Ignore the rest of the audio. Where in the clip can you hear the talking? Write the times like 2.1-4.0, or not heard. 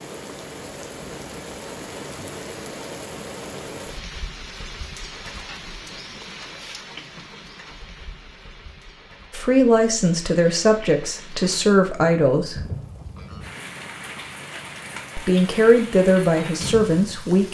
9.3-12.6, 15.2-17.4.